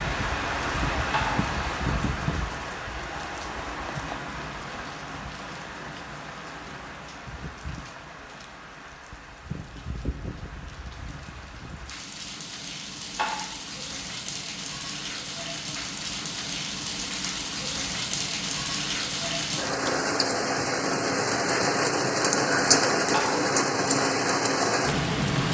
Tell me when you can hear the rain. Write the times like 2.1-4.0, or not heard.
0.0-25.5.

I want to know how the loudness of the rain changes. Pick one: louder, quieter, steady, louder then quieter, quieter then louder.
quieter then louder.